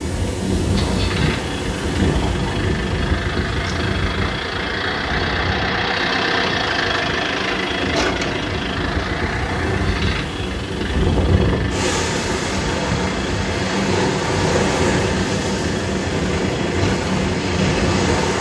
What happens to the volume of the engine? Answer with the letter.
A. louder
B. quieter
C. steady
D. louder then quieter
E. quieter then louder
D.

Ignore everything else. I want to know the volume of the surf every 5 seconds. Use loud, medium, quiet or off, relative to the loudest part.
loud, medium, loud, loud.